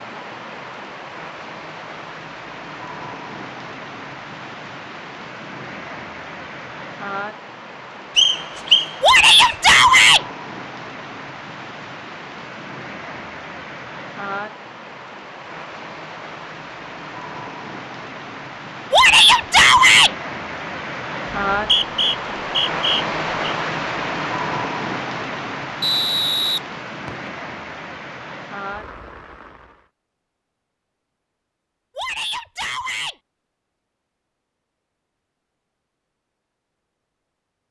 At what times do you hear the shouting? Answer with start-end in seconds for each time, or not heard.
9.0-10.2, 18.9-20.1, 31.9-33.1.